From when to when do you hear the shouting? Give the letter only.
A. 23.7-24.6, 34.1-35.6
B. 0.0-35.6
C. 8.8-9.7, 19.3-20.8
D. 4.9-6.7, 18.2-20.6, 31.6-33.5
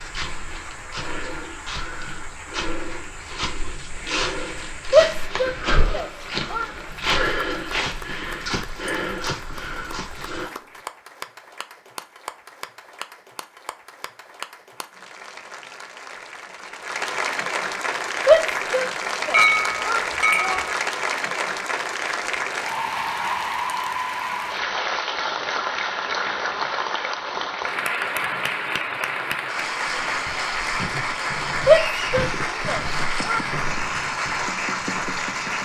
D.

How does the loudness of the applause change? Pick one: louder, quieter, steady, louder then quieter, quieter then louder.
louder.